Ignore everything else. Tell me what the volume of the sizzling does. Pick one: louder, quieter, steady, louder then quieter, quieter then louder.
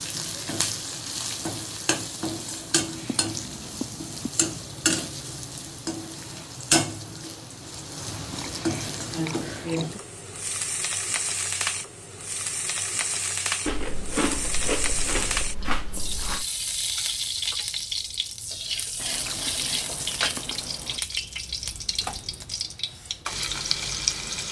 steady.